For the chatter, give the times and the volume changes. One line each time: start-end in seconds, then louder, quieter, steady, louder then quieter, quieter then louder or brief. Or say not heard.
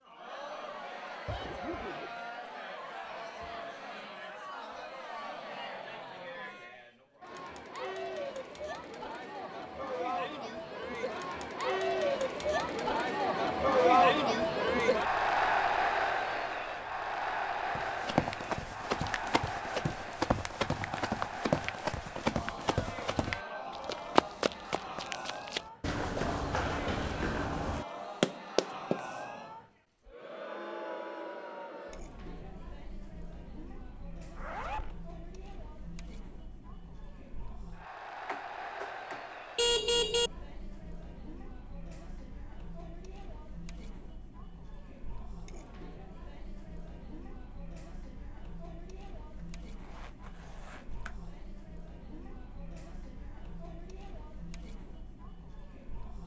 0.0-56.2 louder then quieter.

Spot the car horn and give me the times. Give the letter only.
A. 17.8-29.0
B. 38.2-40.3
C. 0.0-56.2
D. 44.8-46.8
B.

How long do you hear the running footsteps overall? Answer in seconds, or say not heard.
11 s.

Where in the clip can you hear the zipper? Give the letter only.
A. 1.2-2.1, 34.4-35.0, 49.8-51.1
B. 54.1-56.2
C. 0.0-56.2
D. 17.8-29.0
A.